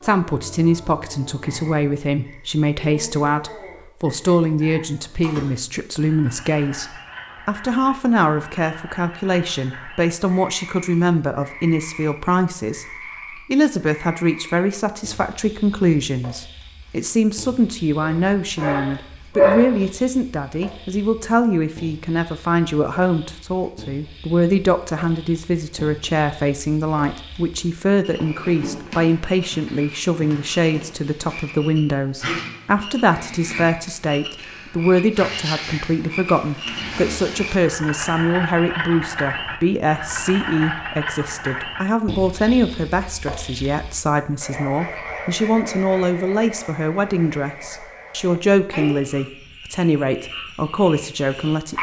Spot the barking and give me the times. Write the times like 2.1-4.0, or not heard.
18.0-19.9.